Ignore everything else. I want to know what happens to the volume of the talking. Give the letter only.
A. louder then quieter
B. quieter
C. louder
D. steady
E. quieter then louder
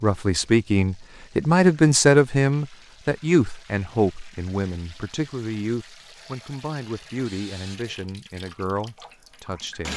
B.